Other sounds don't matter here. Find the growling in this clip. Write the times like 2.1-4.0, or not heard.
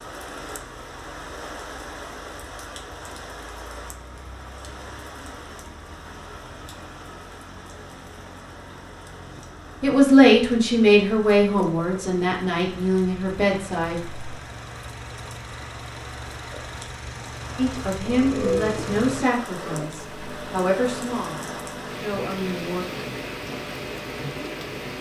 18.1-19.9.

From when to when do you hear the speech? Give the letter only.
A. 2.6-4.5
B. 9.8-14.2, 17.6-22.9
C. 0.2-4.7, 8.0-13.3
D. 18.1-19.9
B.